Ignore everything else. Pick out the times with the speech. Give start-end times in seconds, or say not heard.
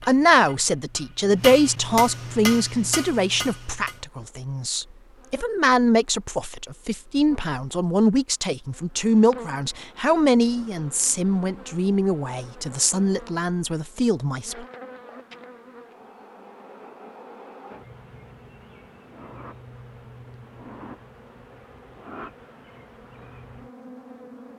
0.1-14.7.